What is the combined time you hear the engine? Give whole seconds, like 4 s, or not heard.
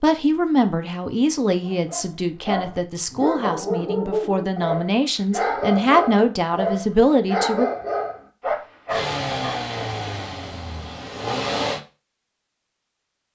3 s.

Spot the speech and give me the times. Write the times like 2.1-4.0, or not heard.
0.0-7.7.